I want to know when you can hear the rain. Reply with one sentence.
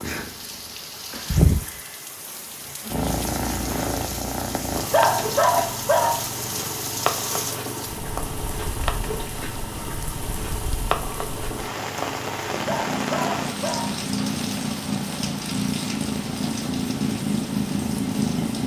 The rain can be heard from 0.0 to 18.6 s.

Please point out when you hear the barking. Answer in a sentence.
The barking can be heard from 4.9 to 6.3 s and from 12.7 to 14.1 s.